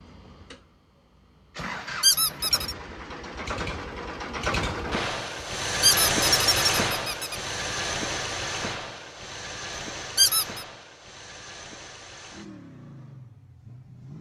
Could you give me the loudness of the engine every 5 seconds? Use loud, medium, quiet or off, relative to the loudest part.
medium, loud, quiet.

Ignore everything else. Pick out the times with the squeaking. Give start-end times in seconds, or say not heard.
2.0-2.8, 5.8-7.3, 10.2-10.7.